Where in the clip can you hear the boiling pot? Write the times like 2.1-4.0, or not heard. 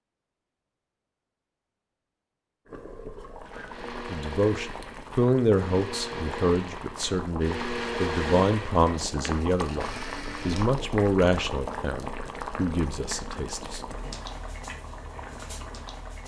2.6-16.2.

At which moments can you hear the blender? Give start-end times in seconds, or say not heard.
3.5-10.7.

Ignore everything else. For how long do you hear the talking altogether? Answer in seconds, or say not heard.
10 s.